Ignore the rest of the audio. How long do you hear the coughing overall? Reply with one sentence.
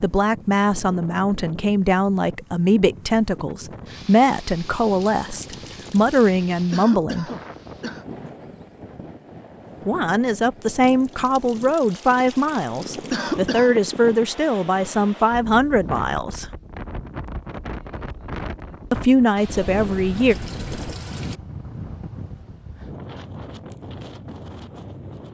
The coughing can be heard for 2 seconds in total.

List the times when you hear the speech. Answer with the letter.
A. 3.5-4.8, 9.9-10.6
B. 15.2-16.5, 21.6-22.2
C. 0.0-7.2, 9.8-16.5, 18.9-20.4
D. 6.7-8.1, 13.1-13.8
C.